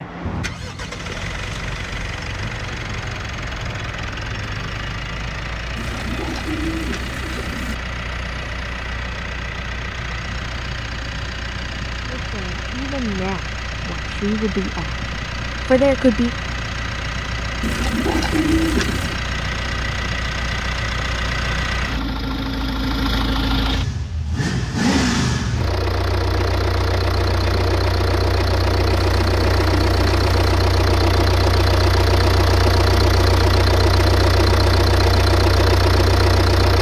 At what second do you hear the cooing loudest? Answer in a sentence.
The loudest moment of the cooing is at 19 seconds.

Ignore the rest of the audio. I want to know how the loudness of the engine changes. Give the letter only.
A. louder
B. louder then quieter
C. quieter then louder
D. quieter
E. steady
A.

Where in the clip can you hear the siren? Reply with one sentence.
You can't hear the siren here.